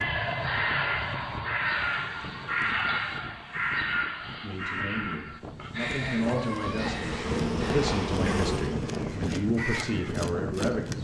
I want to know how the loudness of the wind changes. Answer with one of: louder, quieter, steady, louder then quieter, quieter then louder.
louder.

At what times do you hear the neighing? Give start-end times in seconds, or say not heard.
5.8-7.5.